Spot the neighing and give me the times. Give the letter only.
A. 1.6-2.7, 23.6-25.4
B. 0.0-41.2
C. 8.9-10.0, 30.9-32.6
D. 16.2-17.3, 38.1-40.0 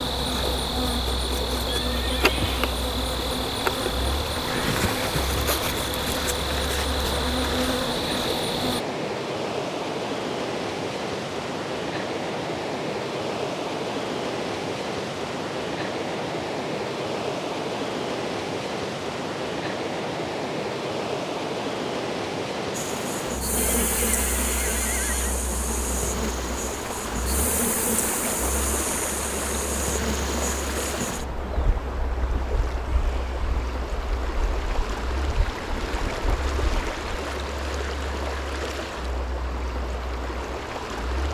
A.